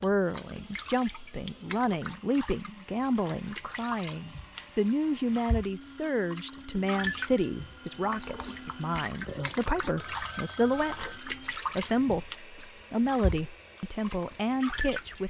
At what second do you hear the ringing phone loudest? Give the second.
11 s.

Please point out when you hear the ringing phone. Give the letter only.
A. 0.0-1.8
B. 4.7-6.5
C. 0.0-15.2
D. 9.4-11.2
D.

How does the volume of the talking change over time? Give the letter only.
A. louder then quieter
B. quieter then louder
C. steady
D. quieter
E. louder
C.